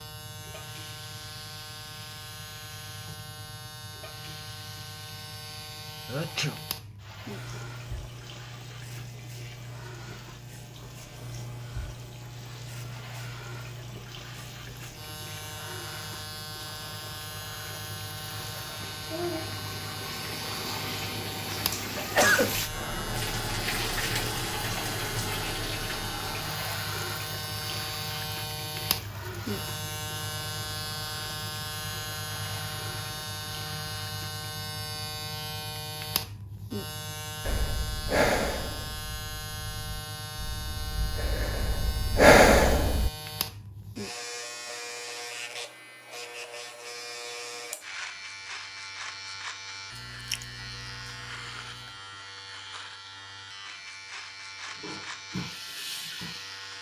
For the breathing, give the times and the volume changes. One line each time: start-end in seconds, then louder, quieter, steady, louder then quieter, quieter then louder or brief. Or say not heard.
37.4-43.1 quieter then louder.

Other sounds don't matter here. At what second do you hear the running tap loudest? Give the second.
24 s.